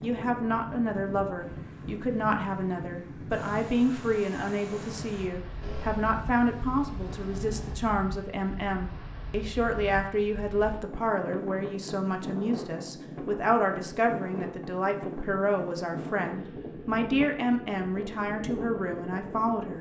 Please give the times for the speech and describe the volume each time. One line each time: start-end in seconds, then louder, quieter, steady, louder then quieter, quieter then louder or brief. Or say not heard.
0.0-19.7 steady.